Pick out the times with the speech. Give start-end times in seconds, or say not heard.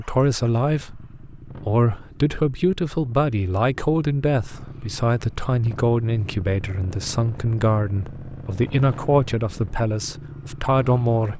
0.0-11.3.